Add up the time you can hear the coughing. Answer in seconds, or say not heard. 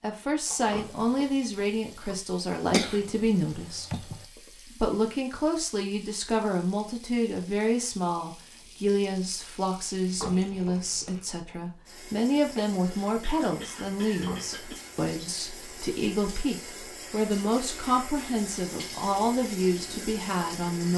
4 s.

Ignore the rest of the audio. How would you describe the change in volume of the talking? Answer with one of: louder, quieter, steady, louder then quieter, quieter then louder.
steady.